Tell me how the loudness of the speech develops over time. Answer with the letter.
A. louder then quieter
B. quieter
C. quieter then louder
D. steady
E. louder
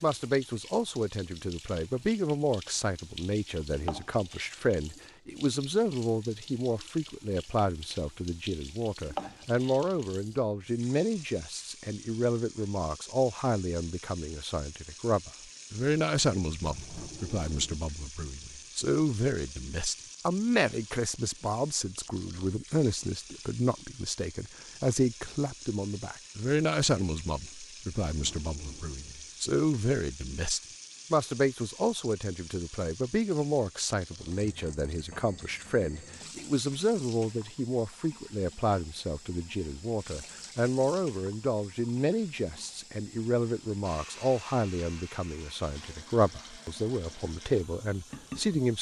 D.